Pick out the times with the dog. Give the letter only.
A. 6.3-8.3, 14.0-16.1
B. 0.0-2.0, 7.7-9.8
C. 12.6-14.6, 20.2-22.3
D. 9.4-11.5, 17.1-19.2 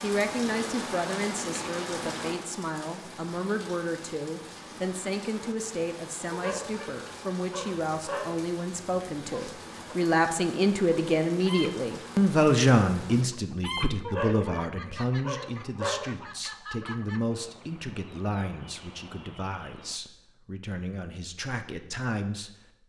A.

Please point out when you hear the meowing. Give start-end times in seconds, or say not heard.
not heard.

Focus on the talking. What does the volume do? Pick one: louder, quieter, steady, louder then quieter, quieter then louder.
louder then quieter.